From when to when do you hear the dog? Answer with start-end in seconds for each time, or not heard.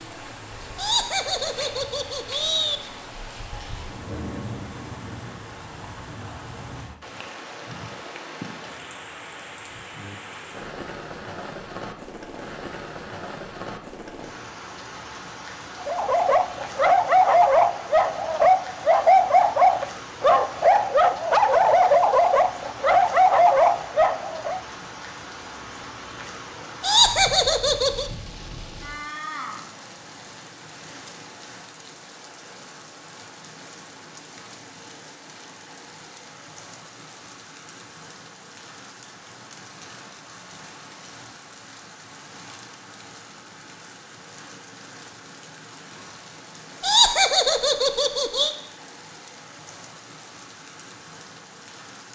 15.8-24.6.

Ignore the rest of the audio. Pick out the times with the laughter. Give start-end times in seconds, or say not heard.
0.8-2.8, 26.8-28.1, 46.8-48.5.